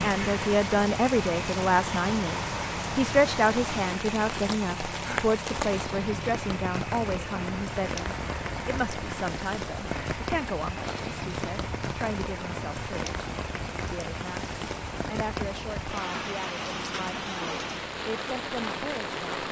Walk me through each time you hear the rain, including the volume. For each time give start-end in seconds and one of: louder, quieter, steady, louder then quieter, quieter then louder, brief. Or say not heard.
0.0-19.4 steady.